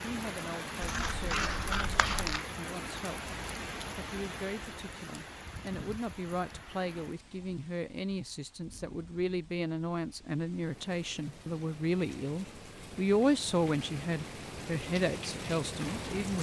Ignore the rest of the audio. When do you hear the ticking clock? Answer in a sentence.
The ticking clock can't be heard in this clip.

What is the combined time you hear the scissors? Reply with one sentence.
You can hear the scissors for 2 seconds altogether.